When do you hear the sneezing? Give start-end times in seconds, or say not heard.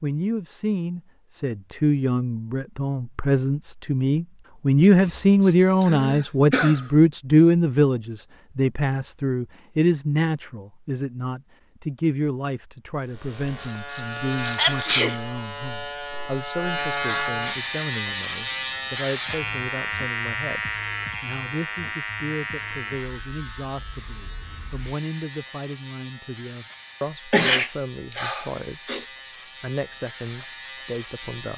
5.0-6.9, 14.6-15.2, 27.3-29.1.